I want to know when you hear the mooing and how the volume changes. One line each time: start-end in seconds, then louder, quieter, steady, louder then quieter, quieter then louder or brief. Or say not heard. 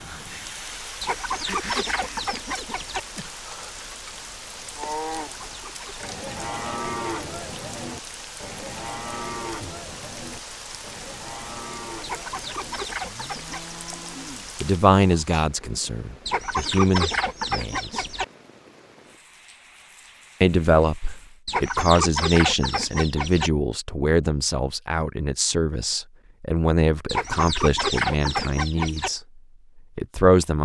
4.8-14.6 quieter.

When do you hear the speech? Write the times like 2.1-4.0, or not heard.
14.6-18.1, 20.4-29.2, 29.9-30.6.